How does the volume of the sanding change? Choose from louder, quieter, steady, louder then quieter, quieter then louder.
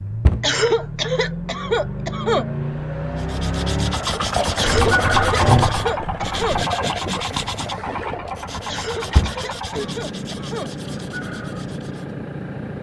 quieter.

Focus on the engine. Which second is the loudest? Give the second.
5 s.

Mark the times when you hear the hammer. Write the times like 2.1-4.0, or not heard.
not heard.